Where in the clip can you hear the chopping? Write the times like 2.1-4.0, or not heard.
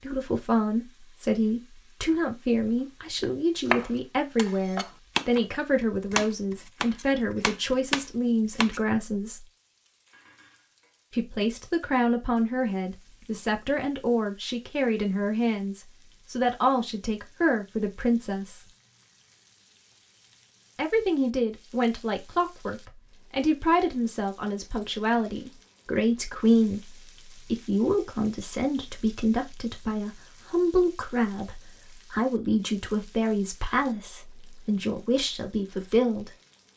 3.6-8.8.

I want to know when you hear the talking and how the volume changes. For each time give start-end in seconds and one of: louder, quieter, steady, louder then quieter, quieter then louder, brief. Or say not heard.
0.0-9.4 steady
11.1-18.6 steady
20.8-36.3 steady.